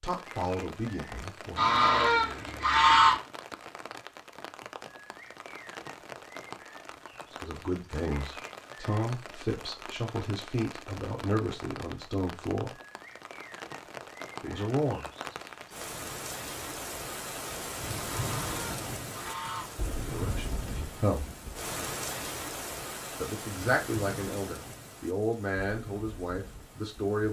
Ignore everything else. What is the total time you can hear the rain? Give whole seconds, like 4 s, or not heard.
27 s.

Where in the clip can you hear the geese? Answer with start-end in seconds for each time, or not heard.
1.6-3.2, 18.1-19.7.